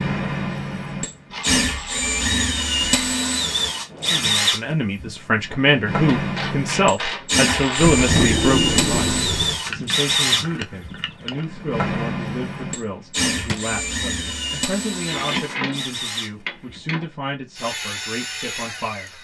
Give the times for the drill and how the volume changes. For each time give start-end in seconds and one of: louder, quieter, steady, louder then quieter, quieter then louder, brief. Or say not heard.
0.0-19.1 quieter.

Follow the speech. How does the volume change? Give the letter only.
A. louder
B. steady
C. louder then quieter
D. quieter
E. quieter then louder
D.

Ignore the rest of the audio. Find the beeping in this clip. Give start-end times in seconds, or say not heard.
not heard.